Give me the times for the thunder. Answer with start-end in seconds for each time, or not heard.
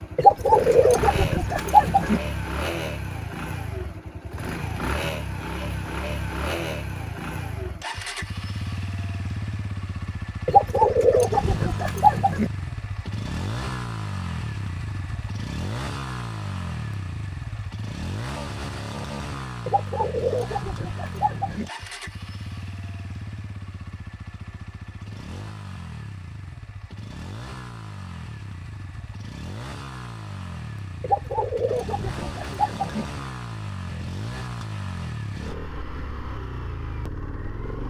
not heard.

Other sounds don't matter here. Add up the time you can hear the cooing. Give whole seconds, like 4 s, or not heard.
8 s.